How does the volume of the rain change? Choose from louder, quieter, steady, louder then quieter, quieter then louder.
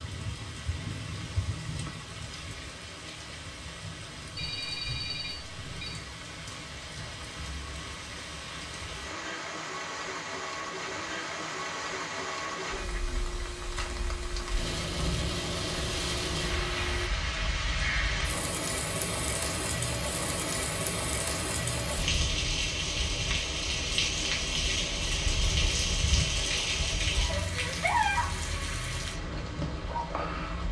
louder.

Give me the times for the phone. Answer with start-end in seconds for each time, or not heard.
4.3-6.0.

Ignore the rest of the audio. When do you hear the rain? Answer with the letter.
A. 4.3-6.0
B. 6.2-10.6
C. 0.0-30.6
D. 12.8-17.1
C.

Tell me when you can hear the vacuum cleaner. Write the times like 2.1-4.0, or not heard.
12.8-17.1.